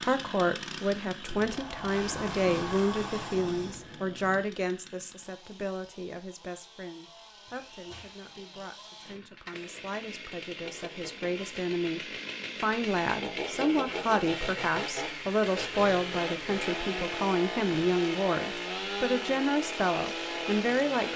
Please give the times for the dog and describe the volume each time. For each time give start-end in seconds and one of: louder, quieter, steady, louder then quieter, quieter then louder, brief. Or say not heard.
not heard.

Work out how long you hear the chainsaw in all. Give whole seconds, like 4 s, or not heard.
21 s.